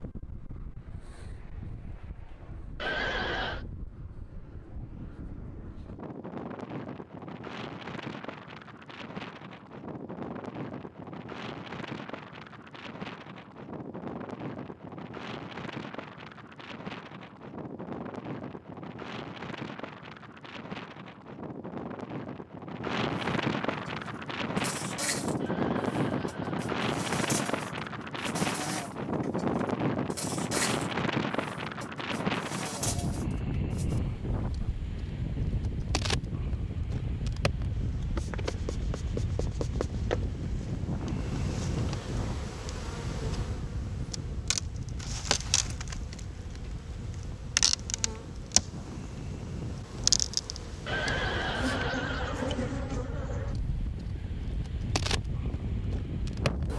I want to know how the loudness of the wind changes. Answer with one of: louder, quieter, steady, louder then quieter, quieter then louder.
louder then quieter.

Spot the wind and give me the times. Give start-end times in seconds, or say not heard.
0.0-56.7.